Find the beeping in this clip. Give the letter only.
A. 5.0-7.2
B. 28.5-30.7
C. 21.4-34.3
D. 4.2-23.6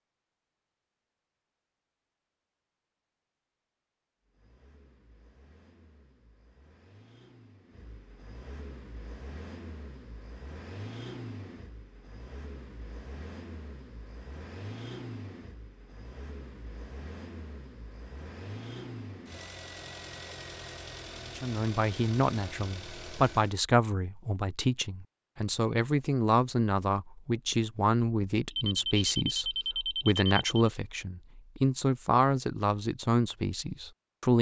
B.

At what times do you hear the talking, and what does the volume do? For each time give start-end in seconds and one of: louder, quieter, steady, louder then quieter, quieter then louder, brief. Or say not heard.
21.4-34.3 steady.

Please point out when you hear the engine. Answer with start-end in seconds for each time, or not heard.
4.2-23.6.